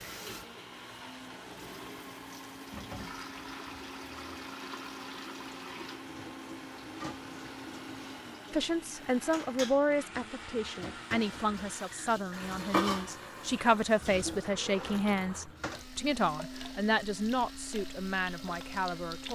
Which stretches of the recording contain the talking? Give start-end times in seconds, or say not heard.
8.5-19.3.